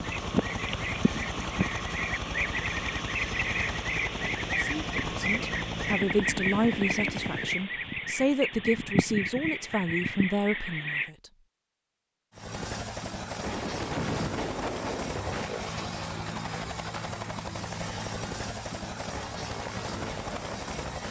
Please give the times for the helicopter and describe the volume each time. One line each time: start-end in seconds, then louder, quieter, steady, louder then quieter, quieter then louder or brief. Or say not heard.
0.0-7.7 steady
12.3-21.0 steady.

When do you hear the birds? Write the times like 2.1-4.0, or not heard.
0.0-11.1.